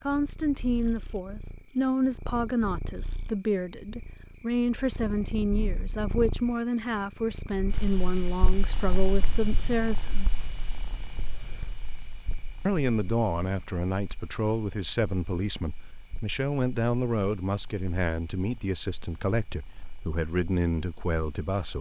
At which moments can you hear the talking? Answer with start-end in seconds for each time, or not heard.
0.0-10.3, 12.7-21.7.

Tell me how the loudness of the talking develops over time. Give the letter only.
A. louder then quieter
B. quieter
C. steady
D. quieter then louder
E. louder
C.